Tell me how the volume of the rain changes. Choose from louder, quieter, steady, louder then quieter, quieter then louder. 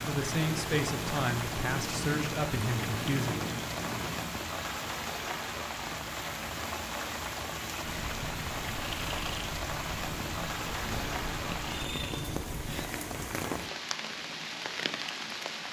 steady.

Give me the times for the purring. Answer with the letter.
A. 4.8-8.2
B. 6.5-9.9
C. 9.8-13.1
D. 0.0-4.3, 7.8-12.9
D.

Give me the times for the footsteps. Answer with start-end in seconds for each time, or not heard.
not heard.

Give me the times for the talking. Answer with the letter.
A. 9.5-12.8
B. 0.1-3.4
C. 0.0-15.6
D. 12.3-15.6
B.